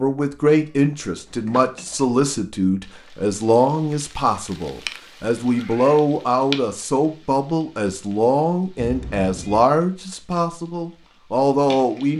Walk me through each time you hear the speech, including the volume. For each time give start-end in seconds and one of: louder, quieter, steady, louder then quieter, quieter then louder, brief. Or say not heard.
0.0-12.1 steady.